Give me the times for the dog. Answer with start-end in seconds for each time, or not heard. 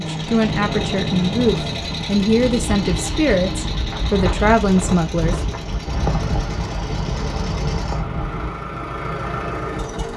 not heard.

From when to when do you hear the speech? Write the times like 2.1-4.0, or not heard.
0.0-5.5.